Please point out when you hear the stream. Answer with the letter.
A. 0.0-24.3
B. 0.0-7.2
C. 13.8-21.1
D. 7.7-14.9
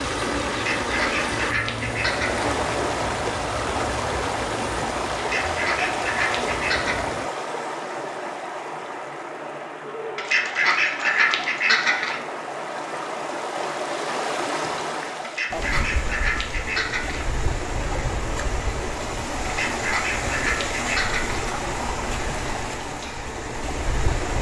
A.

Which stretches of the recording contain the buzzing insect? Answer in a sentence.
You can hear the buzzing insect from 0.0 to 7.2 s.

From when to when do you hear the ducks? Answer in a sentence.
You can hear the ducks from 0.5 to 2.5 s, from 5.2 to 7.0 s, from 10.2 to 12.2 s, from 15.2 to 17.2 s and from 19.4 to 21.4 s.